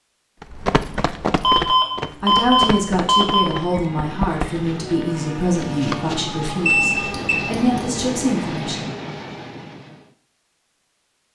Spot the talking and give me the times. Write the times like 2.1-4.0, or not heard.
2.2-8.8.